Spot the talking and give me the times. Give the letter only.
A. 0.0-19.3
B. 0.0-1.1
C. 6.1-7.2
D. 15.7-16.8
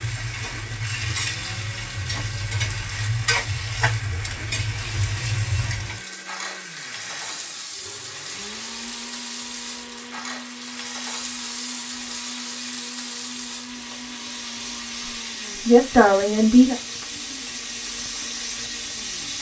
D.